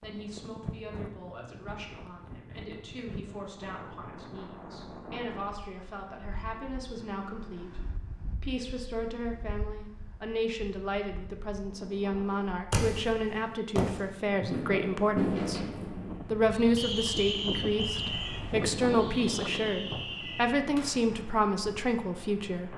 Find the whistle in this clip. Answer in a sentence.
The whistle can be heard from 16.8 to 18.4 s.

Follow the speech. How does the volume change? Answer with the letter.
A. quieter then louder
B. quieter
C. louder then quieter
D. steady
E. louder
E.